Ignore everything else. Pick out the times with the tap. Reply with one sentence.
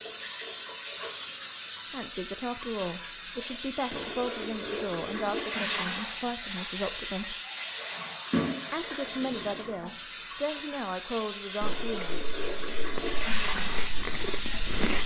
You can hear the tap from 0.0 to 15.0 s.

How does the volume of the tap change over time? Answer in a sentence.
The loudness of the tap stays about the same.